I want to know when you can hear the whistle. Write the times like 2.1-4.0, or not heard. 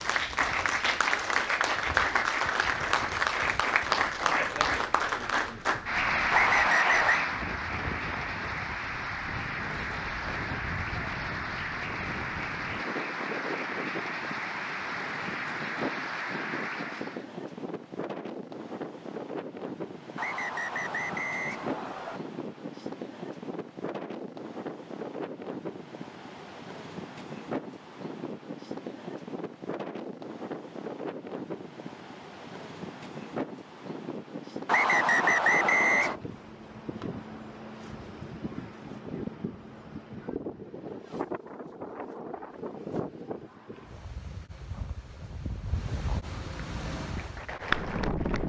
6.3-7.2, 20.1-22.2, 34.6-36.1.